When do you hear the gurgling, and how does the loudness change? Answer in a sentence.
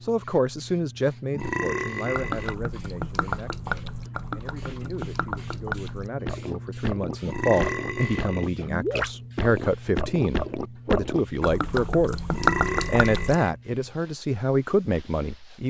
The gurgling can be heard from 2.1 to 13.3 s, getting louder.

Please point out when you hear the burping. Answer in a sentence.
The burping can be heard from 1.3 to 2.5 s, from 7.2 to 8.4 s and from 12.3 to 13.5 s.